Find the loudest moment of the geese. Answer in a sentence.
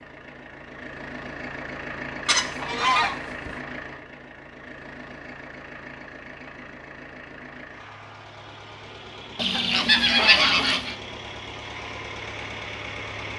The volume of the geese peaks at 10 seconds.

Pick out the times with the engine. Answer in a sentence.
The engine can be heard from 0.0 to 13.3 s.